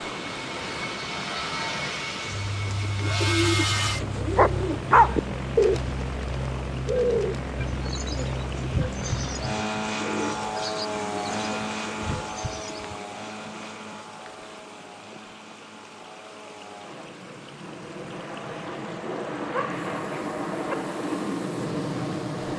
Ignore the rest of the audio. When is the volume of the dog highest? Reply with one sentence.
The volume of the dog peaks at 5 seconds.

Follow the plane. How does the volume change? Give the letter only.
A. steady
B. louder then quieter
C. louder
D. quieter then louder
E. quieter
D.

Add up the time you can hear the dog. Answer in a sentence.
The dog can be heard for 2 seconds in total.